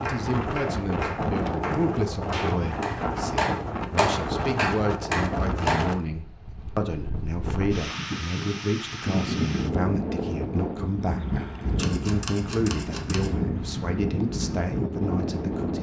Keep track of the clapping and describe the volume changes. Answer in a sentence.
The volume of the clapping goes up.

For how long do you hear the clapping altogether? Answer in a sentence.
You can hear the clapping for 6 seconds altogether.